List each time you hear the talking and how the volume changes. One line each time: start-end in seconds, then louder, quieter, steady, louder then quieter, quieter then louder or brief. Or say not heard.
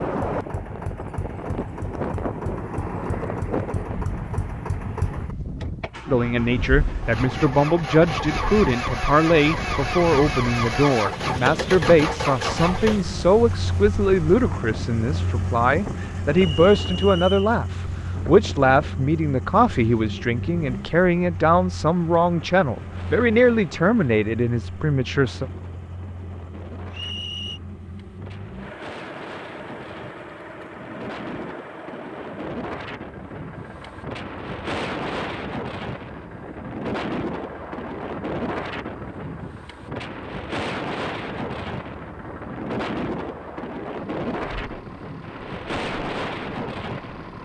6.0-25.4 steady.